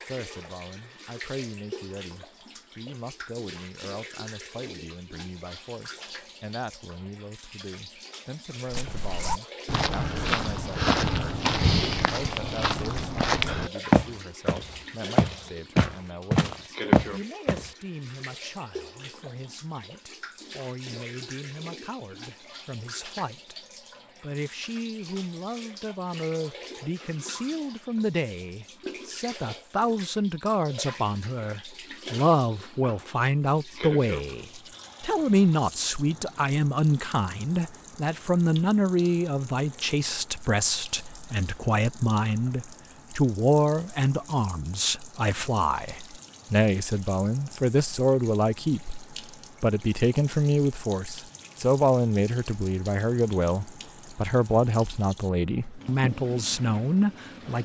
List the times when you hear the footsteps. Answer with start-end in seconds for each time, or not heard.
8.7-17.7.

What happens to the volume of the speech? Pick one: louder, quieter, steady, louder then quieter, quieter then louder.
louder.